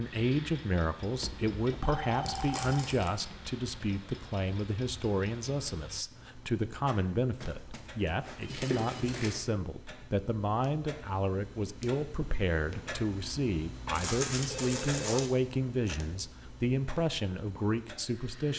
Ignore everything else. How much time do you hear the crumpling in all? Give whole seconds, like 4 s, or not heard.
3 s.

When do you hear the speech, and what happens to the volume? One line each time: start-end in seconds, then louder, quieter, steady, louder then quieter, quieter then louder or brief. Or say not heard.
0.0-18.5 steady.